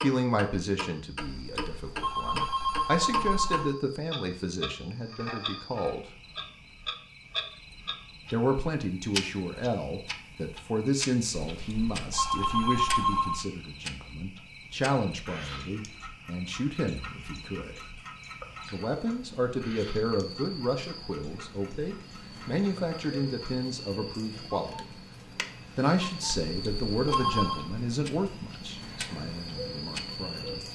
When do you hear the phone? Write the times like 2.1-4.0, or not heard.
1.2-3.7, 11.4-13.4, 26.5-27.7.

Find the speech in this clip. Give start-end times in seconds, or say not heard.
0.0-6.0, 8.3-17.8, 18.7-24.9, 25.8-30.6.